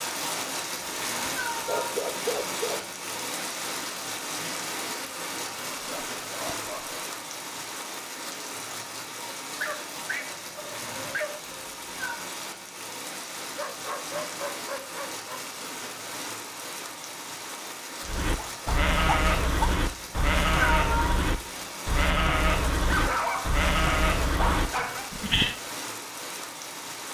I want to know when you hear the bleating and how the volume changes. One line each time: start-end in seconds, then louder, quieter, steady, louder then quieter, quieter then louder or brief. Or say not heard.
18.0-25.6 steady.